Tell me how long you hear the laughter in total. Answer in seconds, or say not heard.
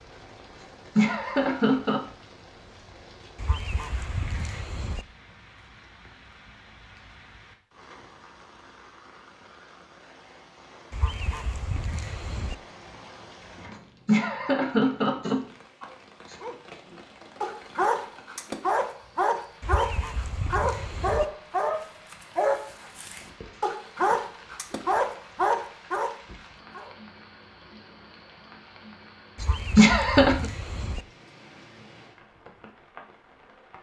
4 s.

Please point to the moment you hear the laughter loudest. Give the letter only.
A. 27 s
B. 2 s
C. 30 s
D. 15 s
C.